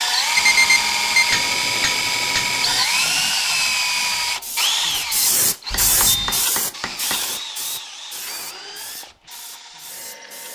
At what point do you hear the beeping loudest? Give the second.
1 s.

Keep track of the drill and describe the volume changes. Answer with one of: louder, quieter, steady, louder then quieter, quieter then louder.
quieter.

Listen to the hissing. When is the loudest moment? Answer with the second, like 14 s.
6 s.